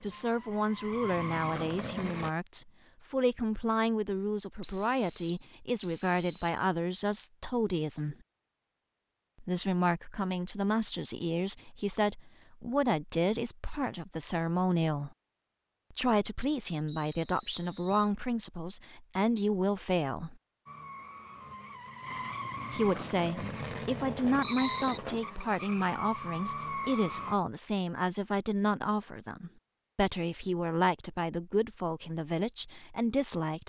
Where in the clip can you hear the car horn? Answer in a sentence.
The car horn can't be heard in this clip.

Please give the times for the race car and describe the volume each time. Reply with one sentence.
The race car can be heard briefly from 0.0 to 2.3 s; and from 20.6 to 27.4 s, getting louder.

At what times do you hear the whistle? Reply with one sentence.
You can hear the whistle from 4.6 to 6.6 s, from 16.9 to 18.1 s and from 23.4 to 25.0 s.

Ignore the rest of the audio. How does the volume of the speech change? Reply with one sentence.
The volume of the speech stays about the same.